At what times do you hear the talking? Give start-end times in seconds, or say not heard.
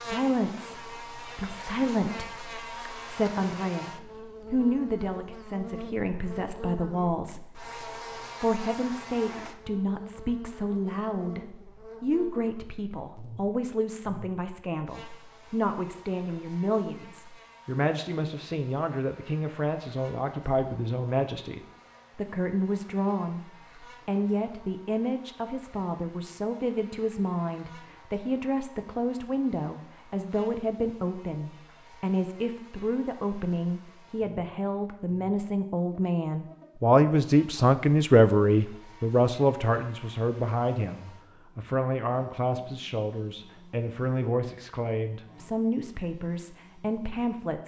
0.0-47.6.